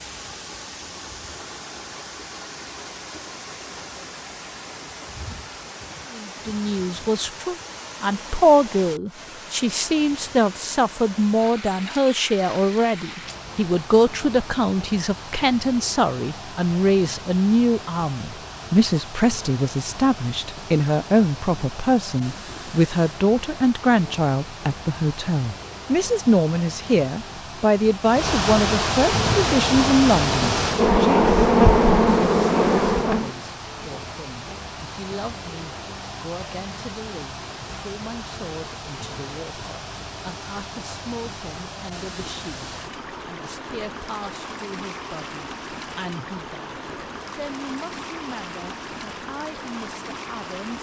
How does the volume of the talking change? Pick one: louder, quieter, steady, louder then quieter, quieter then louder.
quieter.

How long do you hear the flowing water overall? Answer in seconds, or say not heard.
51 s.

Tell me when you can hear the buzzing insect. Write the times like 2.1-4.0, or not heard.
29.1-33.3.